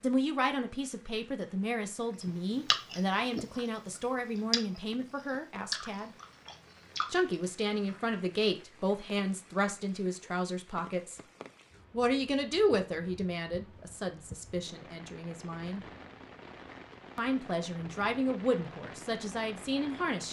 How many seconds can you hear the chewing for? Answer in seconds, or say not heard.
5 s.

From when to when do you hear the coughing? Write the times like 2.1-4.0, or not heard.
not heard.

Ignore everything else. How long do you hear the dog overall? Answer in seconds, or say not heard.
not heard.